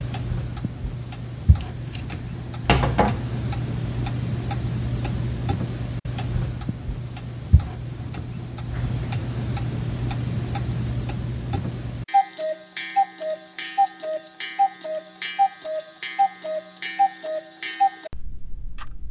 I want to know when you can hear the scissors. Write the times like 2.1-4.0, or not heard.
1.6-3.2.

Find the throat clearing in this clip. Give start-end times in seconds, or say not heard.
not heard.